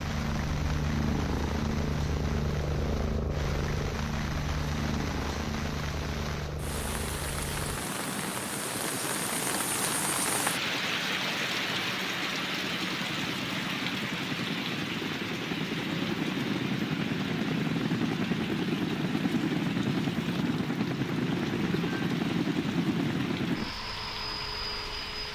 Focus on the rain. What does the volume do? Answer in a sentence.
The volume of the rain goes up, then down.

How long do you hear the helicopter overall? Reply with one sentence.
The helicopter can be heard for 25 seconds in total.